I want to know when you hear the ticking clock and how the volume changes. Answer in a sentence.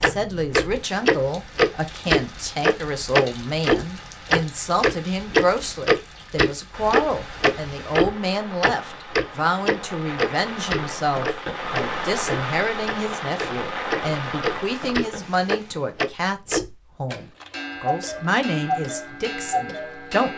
You can hear the ticking clock from 0.0 to 20.3 s, getting quieter.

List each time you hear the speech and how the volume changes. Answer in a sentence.
You can hear the speech from 0.0 to 20.3 s, at a steady volume.